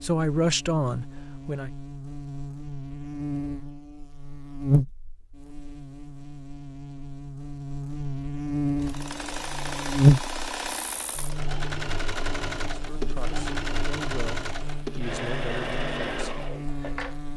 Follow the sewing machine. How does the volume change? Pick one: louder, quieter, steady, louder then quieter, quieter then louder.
steady.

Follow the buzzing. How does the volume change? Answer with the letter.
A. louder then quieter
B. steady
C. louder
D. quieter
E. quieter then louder
A.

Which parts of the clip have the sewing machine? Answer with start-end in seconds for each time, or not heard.
8.8-17.2.